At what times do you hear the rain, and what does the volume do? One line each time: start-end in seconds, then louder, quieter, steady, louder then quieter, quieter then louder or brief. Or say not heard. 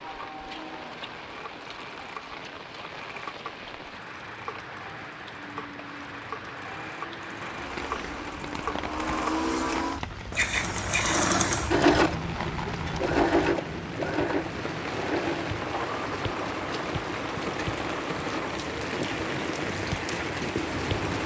0.0-21.2 louder.